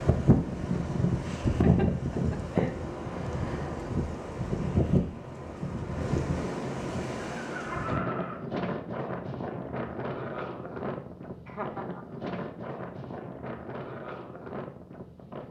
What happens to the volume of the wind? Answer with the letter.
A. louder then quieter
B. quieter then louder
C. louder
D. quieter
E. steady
D.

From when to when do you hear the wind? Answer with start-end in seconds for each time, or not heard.
0.0-15.4.